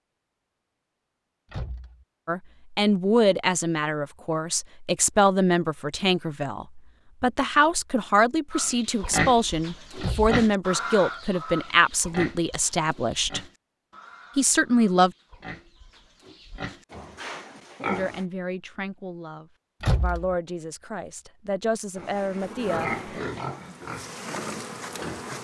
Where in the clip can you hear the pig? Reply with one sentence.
The pig can be heard from 8.5 to 18.2 s and from 21.9 to 25.3 s.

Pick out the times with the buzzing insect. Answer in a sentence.
The buzzing insect can be heard from 22.2 to 25.3 s.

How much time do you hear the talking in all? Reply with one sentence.
You can hear the talking for 17 seconds altogether.